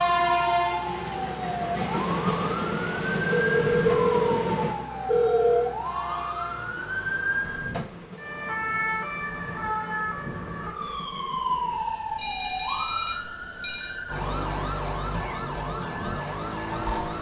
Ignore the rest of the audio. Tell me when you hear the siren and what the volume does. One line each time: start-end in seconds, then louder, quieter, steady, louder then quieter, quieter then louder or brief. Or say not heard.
0.0-17.1 steady.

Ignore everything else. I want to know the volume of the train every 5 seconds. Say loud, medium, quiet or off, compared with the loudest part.
loud, quiet, quiet, quiet.